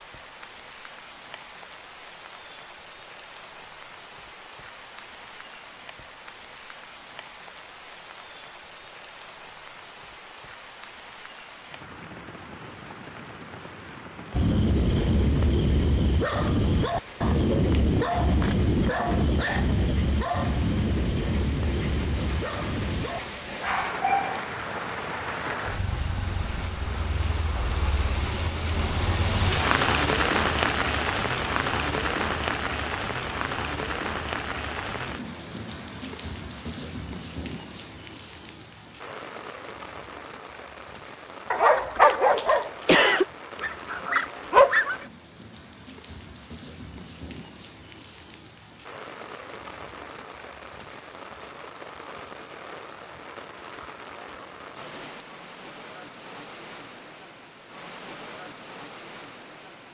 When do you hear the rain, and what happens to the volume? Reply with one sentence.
The rain can be heard from 0.0 to 59.8 s, getting louder then quieter.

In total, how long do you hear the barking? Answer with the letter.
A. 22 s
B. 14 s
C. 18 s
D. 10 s
B.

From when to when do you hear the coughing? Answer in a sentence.
You can hear the coughing from 42.0 to 43.2 s.